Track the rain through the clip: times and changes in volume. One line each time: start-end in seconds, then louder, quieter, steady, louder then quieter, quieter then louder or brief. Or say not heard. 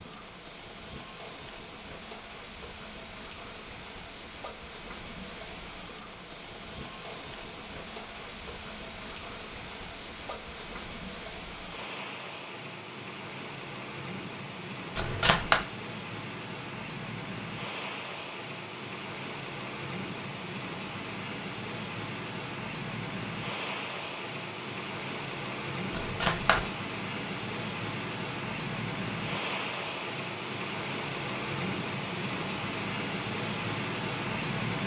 0.0-34.8 louder.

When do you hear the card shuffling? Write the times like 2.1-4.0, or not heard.
14.9-15.7, 25.9-26.7.